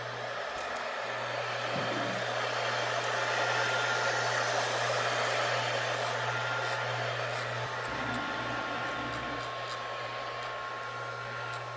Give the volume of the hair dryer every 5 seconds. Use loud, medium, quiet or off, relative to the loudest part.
loud, loud, medium.